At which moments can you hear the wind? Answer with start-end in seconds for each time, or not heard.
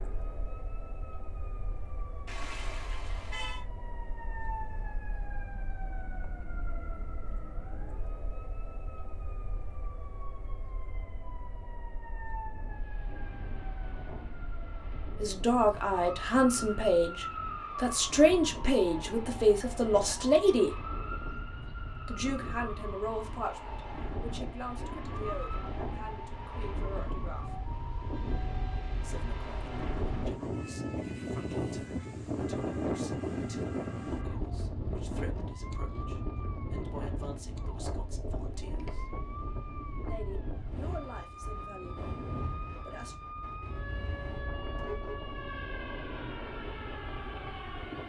12.4-48.0.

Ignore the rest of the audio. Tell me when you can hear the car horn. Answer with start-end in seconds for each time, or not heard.
2.2-3.6, 28.1-29.6, 43.5-45.2.